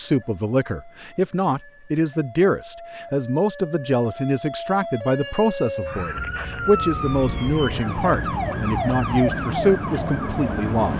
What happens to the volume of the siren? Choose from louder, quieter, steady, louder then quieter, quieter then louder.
louder.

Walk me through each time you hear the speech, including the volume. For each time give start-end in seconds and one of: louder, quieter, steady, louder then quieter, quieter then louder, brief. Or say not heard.
0.0-10.9 steady.